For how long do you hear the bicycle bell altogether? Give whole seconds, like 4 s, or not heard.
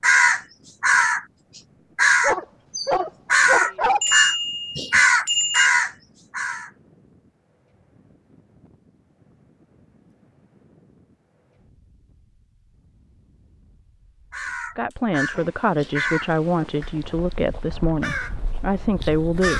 2 s.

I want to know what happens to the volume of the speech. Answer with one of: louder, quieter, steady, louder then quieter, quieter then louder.
steady.